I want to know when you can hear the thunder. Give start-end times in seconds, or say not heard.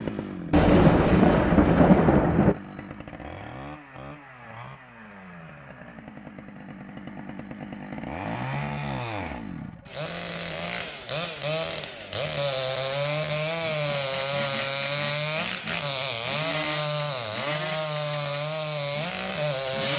0.5-2.5.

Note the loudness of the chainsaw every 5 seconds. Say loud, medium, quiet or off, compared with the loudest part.
medium, medium, loud, loud.